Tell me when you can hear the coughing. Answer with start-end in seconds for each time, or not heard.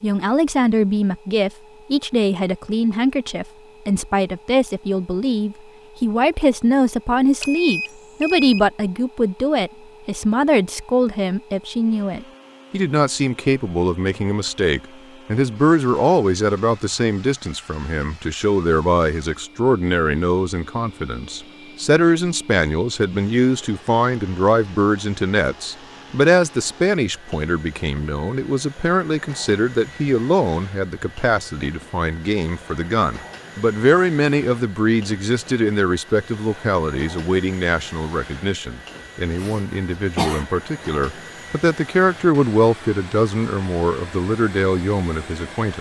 39.4-40.5.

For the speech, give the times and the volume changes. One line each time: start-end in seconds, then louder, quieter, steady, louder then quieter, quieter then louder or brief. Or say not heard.
0.0-45.7 steady.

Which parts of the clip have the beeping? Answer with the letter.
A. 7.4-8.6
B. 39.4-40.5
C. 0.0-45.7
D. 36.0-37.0
A.